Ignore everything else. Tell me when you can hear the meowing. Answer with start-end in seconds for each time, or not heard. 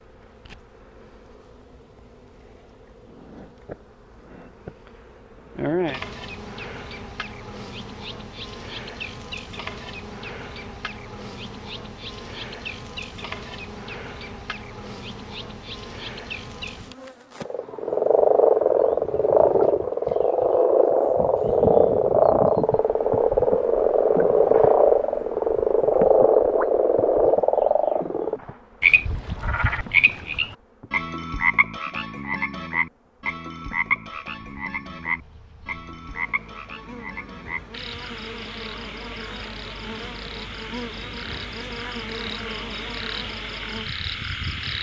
not heard.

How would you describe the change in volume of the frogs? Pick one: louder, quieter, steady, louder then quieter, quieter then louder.
quieter.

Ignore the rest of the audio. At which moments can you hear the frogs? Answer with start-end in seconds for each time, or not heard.
17.4-44.7.